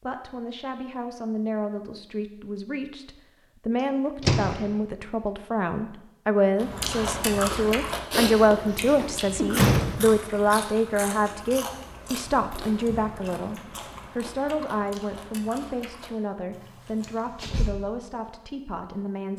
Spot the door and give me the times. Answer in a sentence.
The door can be heard from 4.2 to 4.7 s, from 8.3 to 10.2 s and from 17.0 to 17.7 s.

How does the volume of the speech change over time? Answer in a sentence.
The loudness of the speech goes up, then down.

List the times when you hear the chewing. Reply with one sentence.
You can hear the chewing from 6.5 to 17.3 s.